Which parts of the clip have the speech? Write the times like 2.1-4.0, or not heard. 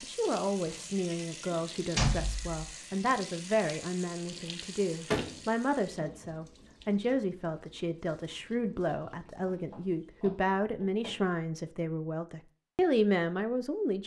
0.0-14.0.